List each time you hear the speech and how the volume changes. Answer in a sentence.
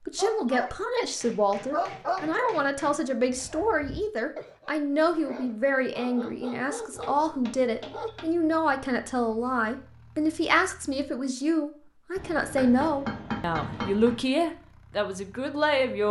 You can hear the speech from 0.1 to 16.0 s, at a steady volume.